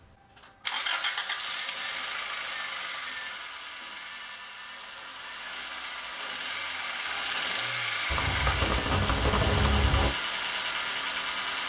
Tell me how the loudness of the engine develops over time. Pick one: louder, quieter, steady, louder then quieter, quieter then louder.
quieter then louder.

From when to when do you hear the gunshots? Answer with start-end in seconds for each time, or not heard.
8.1-10.1.